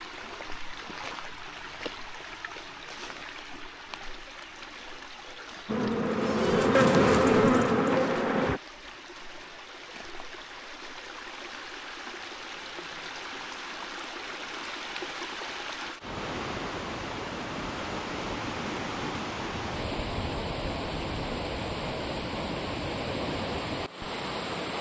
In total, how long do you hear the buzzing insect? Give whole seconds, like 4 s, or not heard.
3 s.